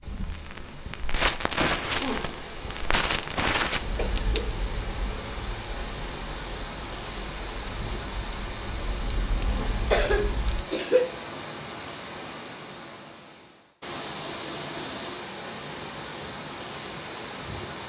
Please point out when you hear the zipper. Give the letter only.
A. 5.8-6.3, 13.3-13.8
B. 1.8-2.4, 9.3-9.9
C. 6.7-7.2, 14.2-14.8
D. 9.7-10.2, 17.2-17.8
B.